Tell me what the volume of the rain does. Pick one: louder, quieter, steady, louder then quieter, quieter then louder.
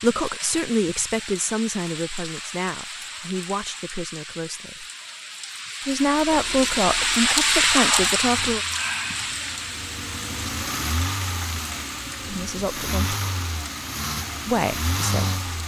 louder then quieter.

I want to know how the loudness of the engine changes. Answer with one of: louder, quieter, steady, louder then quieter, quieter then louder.
louder.